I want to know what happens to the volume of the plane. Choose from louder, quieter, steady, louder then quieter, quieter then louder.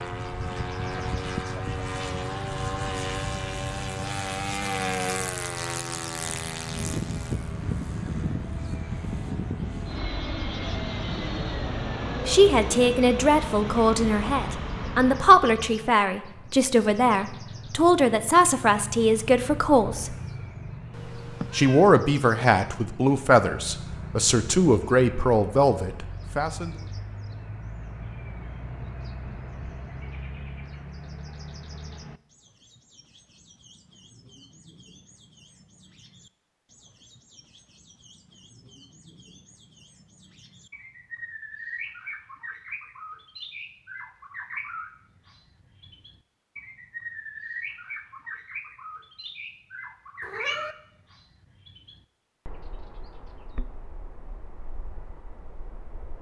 steady.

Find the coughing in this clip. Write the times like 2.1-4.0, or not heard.
not heard.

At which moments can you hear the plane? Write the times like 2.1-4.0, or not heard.
0.0-15.4.